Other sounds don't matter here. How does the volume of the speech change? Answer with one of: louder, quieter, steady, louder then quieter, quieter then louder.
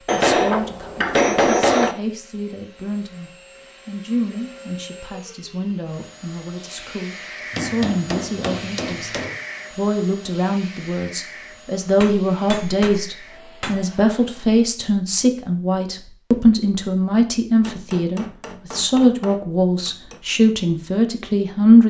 louder.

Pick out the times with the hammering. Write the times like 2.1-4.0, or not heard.
0.1-1.9, 7.5-9.4, 11.9-13.8, 17.5-20.2.